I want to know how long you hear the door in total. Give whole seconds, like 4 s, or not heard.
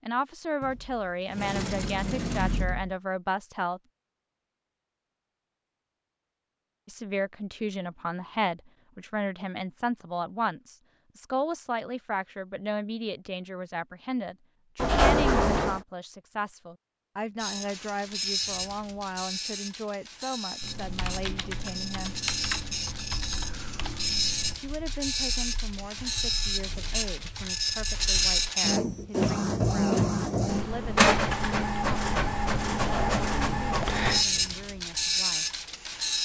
4 s.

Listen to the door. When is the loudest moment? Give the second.
15 s.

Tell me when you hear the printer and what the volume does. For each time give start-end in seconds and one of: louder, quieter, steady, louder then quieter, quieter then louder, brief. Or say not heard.
17.4-36.1 louder.